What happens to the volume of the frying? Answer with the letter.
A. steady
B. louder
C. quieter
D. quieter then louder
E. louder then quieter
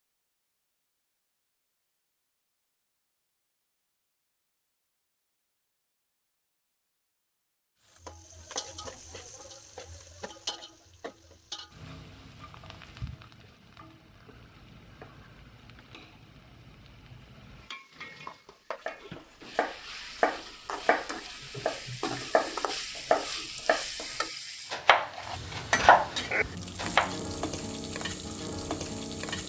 D.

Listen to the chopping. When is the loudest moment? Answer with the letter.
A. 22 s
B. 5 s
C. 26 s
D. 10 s
C.